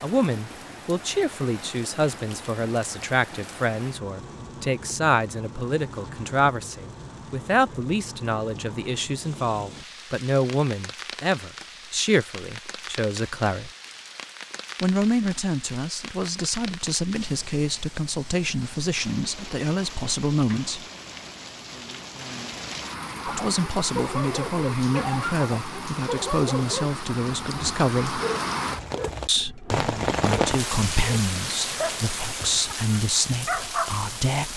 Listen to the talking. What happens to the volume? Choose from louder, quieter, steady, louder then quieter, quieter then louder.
steady.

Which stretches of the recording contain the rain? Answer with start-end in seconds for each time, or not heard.
0.0-34.5.